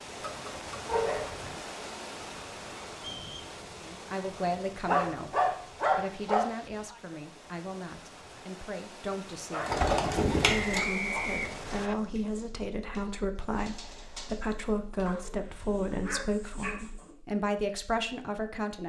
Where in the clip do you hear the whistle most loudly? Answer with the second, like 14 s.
11 s.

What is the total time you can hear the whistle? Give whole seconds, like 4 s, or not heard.
2 s.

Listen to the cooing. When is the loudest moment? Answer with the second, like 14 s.
10 s.